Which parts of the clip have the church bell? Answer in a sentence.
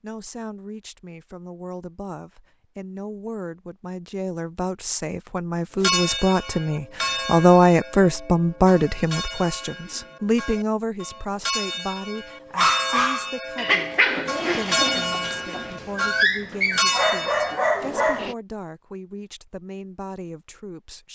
The church bell can be heard from 5.8 to 17.6 s.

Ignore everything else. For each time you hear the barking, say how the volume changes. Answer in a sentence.
You can hear the barking from 12.6 to 18.4 s, getting quieter then louder.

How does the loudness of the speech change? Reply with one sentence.
The volume of the speech goes up, then down.